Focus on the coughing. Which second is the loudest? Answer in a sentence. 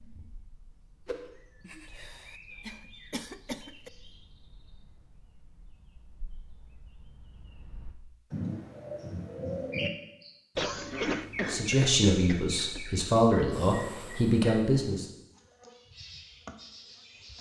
The loudest moment of the coughing is at 11 seconds.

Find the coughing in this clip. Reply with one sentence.
The coughing can be heard from 1.6 to 3.9 s and from 10.6 to 12.6 s.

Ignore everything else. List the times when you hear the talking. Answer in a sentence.
The talking can be heard from 11.4 to 15.1 s.